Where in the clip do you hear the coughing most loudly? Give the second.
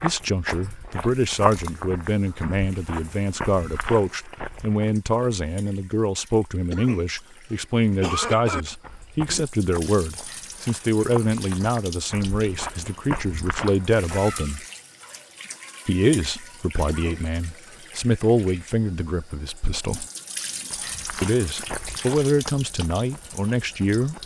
8 s.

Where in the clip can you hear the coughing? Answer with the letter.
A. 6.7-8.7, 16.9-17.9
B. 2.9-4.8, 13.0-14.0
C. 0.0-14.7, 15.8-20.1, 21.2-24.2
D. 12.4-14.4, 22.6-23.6
A.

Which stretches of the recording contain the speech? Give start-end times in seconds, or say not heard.
0.0-14.7, 15.8-20.1, 21.2-24.2.